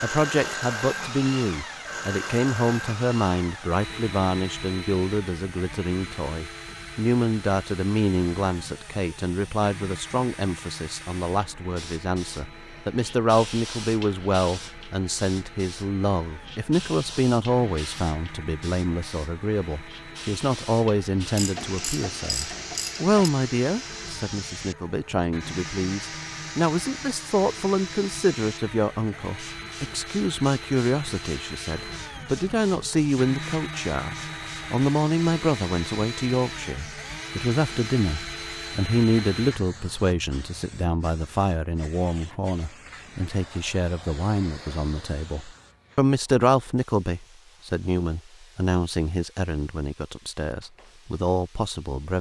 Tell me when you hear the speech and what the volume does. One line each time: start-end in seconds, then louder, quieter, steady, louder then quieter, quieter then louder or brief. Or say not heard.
0.0-52.1 steady.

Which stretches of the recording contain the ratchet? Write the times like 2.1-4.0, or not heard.
21.4-23.3.